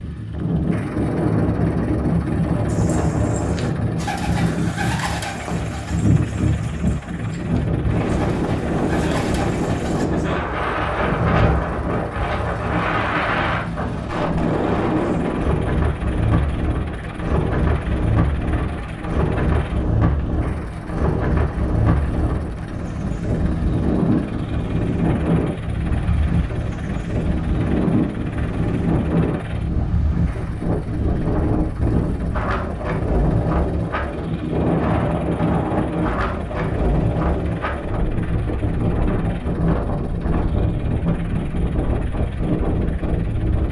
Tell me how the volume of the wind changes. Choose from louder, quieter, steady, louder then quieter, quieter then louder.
steady.